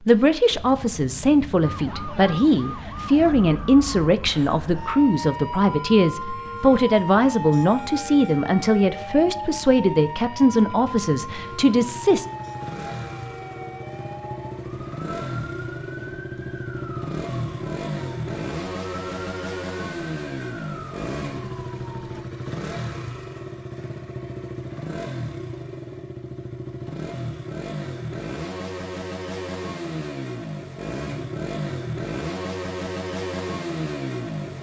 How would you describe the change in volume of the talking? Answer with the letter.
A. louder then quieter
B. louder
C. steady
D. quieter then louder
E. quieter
C.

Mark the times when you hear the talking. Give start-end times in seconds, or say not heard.
0.0-12.2.